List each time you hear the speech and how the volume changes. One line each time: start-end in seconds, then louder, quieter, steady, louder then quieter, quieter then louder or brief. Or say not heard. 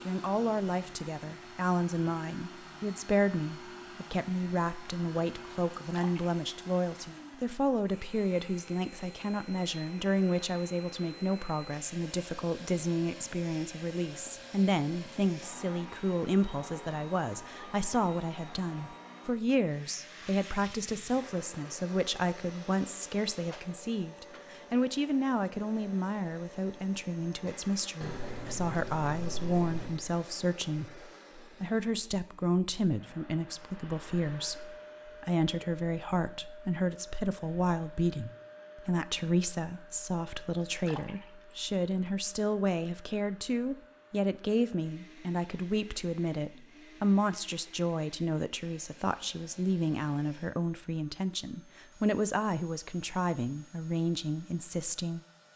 0.0-55.2 steady.